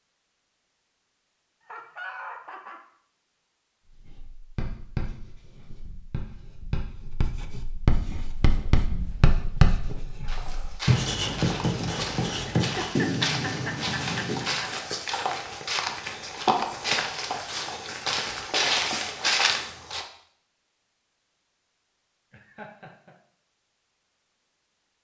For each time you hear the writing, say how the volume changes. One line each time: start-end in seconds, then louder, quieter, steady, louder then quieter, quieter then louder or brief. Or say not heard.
3.9-14.6 louder.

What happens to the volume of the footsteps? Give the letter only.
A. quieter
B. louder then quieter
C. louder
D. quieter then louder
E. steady
C.